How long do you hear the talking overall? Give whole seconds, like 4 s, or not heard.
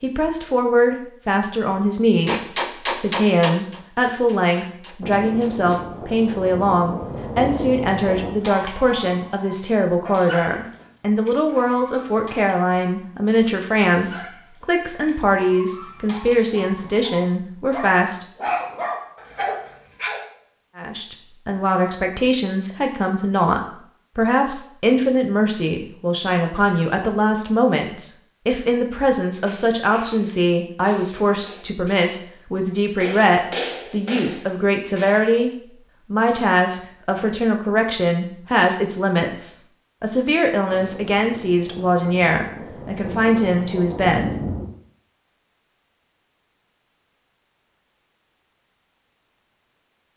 41 s.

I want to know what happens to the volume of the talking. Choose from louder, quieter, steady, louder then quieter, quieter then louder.
steady.